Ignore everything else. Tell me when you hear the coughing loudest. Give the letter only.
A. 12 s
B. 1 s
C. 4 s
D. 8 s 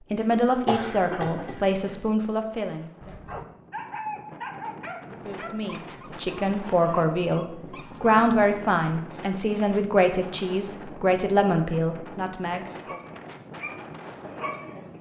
B.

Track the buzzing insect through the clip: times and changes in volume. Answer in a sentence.
The buzzing insect can't be heard in this clip.